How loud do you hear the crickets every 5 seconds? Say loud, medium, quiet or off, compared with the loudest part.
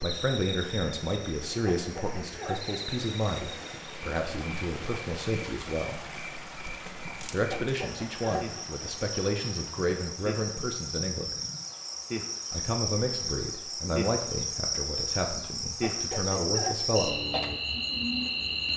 medium, medium, loud, loud.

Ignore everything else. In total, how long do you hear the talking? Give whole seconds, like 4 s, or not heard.
15 s.